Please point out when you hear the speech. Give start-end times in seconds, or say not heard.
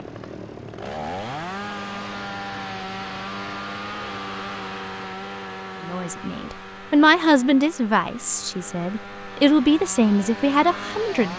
5.8-11.3.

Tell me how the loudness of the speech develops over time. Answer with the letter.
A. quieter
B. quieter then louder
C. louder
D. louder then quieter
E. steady
B.